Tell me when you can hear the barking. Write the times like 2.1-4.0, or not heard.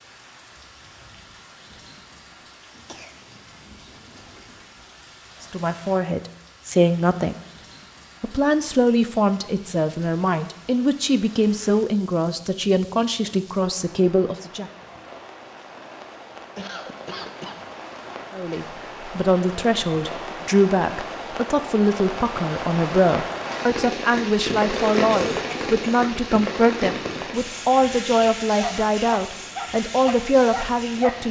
28.6-31.2.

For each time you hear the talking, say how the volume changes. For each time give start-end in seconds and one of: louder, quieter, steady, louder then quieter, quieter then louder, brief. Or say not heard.
5.4-7.3 brief
8.2-14.7 steady
18.3-31.2 steady.